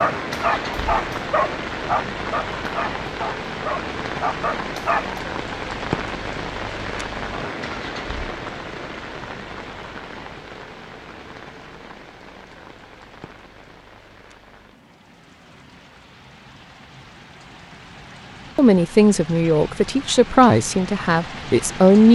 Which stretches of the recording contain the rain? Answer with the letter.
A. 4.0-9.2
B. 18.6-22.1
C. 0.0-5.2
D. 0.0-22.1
D.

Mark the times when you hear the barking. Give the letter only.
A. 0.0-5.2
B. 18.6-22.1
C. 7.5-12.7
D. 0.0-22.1
A.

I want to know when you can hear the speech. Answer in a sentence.
You can hear the speech from 18.6 to 22.1 s.